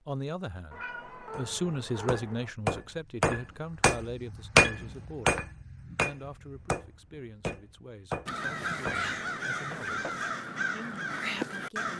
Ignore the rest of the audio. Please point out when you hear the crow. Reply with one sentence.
The crow can be heard from 8.2 to 11.9 s.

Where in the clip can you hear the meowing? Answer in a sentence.
You can hear the meowing from 0.7 to 2.5 s.